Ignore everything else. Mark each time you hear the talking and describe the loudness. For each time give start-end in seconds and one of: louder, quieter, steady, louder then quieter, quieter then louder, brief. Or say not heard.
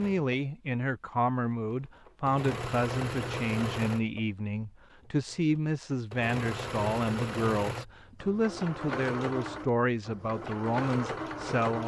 0.0-11.8 steady.